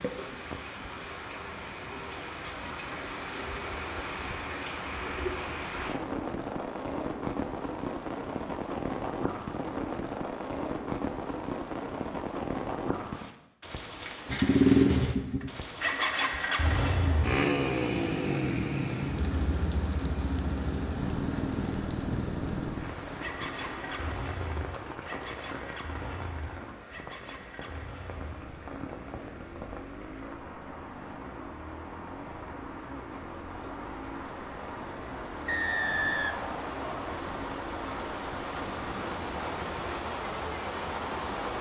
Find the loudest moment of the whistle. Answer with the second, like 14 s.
36 s.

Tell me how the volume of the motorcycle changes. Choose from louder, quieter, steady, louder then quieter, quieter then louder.
quieter.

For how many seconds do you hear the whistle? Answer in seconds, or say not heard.
2 s.